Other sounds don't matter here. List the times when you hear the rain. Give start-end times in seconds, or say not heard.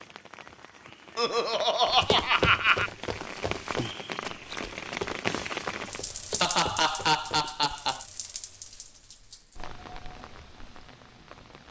0.0-11.6.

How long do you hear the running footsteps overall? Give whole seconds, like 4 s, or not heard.
6 s.